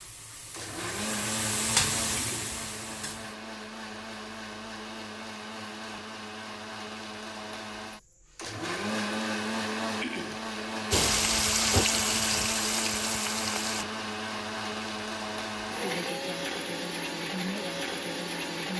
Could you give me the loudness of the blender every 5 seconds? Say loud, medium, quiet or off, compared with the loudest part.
medium, loud, loud, loud.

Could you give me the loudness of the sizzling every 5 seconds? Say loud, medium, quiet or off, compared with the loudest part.
medium, off, loud, off.